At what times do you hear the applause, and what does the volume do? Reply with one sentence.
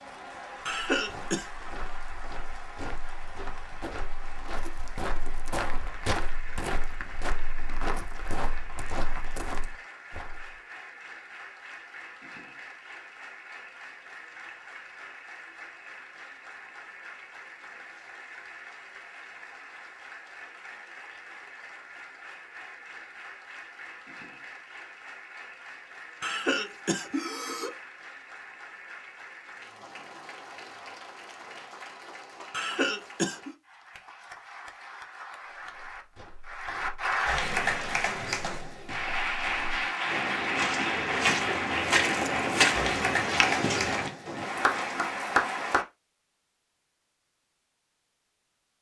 The applause can be heard from 0.0 to 45.9 s, getting louder.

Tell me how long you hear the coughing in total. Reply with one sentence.
The coughing can be heard for 3 seconds in total.